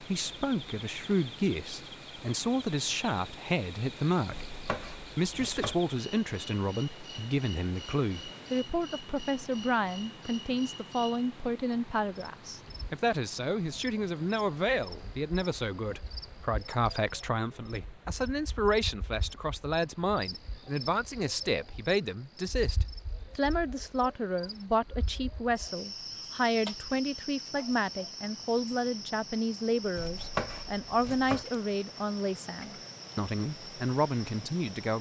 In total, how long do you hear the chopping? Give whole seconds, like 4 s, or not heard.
3 s.